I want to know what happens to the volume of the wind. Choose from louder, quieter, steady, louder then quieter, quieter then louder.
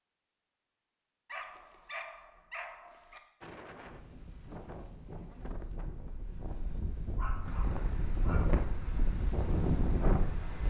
louder.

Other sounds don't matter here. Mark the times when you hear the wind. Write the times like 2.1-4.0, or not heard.
3.4-10.6.